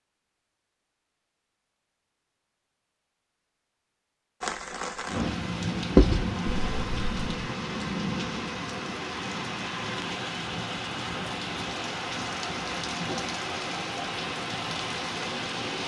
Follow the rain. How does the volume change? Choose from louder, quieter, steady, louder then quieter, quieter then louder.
steady.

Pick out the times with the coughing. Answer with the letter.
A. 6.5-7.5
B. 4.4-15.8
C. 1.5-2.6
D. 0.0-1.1
A.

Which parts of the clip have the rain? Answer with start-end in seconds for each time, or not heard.
4.4-15.8.